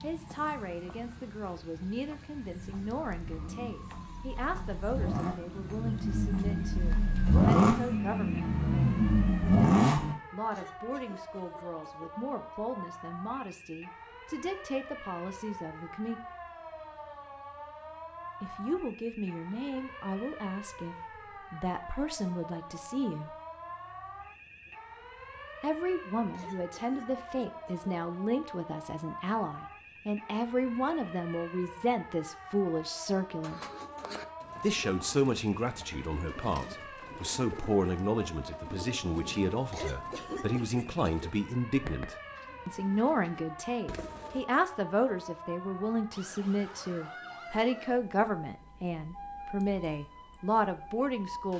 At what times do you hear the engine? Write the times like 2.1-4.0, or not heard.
2.5-10.2.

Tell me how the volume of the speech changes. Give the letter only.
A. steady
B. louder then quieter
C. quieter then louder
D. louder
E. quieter
D.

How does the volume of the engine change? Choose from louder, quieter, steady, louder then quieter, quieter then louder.
louder.